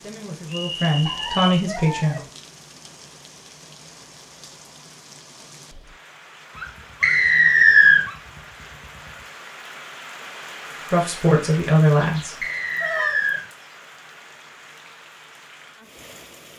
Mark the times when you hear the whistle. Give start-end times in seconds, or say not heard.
0.5-1.4, 7.0-8.1, 12.4-13.4.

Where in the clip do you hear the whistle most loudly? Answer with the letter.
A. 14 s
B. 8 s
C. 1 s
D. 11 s
B.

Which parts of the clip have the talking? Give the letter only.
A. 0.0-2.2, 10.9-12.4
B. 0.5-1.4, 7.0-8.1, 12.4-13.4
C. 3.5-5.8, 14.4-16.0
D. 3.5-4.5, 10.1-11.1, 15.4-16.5
A.